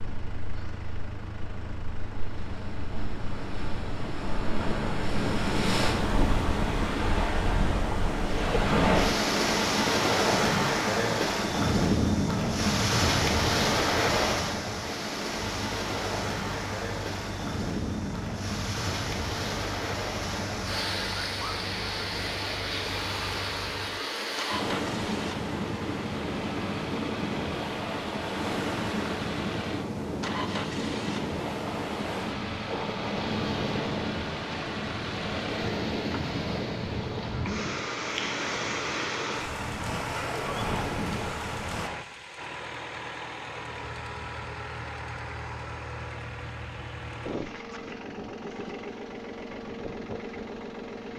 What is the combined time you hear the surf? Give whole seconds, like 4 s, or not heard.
42 s.